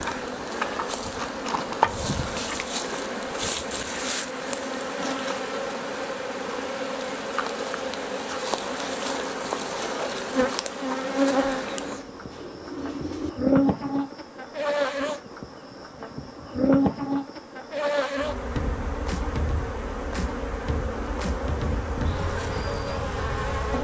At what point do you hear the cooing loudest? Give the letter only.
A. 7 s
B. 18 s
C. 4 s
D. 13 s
D.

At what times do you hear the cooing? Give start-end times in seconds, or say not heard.
11.7-13.3.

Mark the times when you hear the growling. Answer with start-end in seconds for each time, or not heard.
not heard.